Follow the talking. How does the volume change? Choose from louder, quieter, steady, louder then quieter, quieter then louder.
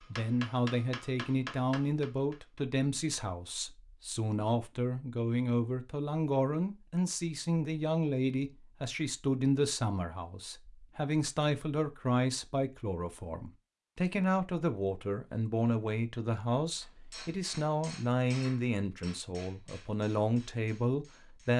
steady.